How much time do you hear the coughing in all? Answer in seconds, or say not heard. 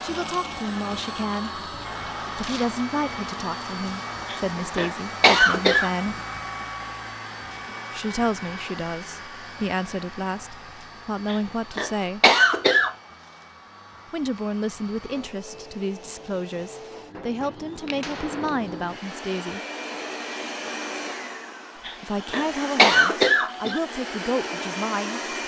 5 s.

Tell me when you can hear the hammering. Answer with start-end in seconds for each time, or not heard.
17.1-18.7.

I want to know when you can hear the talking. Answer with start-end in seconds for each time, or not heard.
0.0-1.6, 2.4-6.2, 7.9-12.3, 14.1-19.6, 21.9-25.4.